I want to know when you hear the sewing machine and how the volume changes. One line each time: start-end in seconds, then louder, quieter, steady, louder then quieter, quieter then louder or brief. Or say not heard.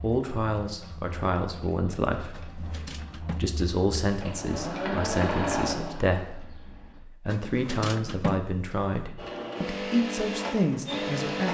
0.0-7.0 louder
9.2-11.4 brief.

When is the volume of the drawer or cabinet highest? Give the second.
8 s.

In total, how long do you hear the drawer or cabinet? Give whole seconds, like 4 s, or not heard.
3 s.